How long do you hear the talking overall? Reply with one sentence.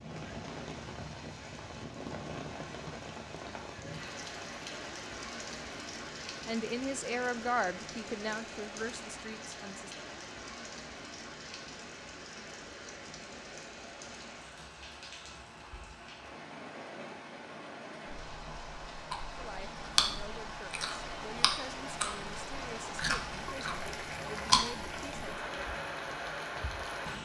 You can hear the talking for 10 seconds altogether.